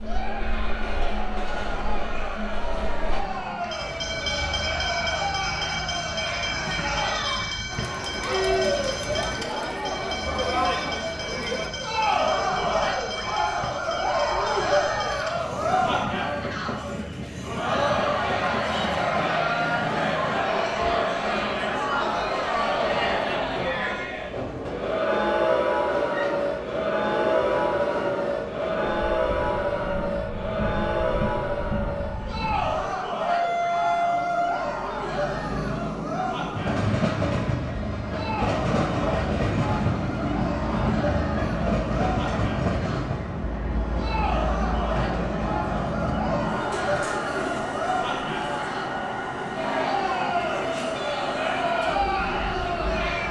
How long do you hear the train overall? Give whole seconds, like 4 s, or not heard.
53 s.